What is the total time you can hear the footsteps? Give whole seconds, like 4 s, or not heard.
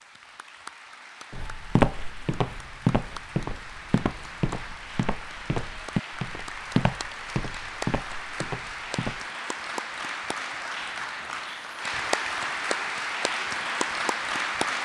8 s.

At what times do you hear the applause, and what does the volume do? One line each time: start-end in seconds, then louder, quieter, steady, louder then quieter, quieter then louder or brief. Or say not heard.
0.0-14.8 louder.